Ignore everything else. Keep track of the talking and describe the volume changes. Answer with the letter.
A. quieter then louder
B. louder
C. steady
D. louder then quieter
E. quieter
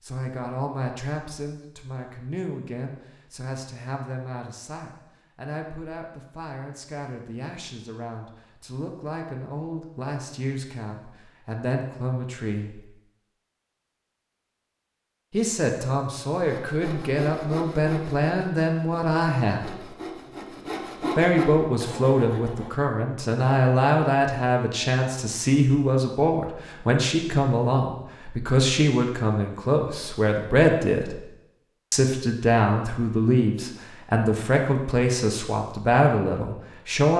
B.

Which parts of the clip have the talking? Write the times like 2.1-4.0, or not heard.
0.0-12.8, 15.3-19.8, 21.1-31.2, 31.9-37.1.